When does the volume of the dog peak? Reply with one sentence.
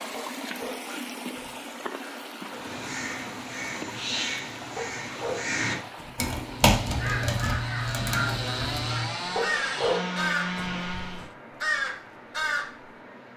The loudest moment of the dog is at 10 seconds.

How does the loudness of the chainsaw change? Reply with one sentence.
The loudness of the chainsaw goes up.